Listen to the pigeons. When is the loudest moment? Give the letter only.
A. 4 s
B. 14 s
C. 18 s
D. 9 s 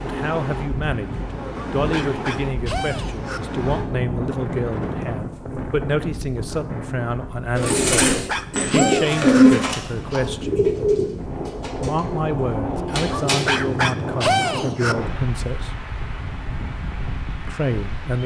D.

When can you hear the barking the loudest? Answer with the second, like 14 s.
14 s.